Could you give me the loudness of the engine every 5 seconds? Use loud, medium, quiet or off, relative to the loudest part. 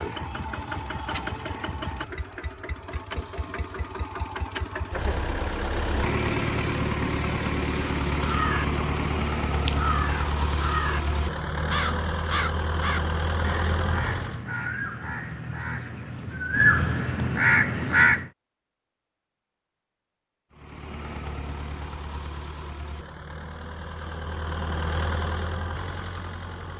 medium, loud, loud, off, medium, medium.